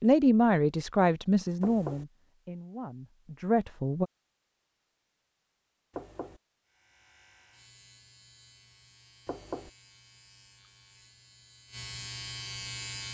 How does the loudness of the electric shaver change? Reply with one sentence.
The loudness of the electric shaver goes up.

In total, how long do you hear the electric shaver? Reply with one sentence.
You can hear the electric shaver for 6 seconds altogether.